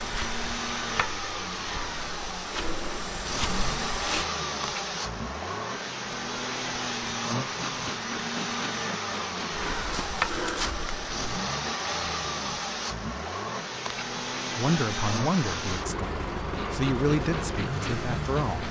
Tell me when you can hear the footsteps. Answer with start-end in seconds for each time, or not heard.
0.0-4.2, 9.5-11.1.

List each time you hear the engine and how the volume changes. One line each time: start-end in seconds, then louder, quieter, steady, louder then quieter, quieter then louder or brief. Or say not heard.
0.0-18.6 steady.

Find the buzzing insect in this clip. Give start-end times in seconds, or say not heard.
0.0-18.6.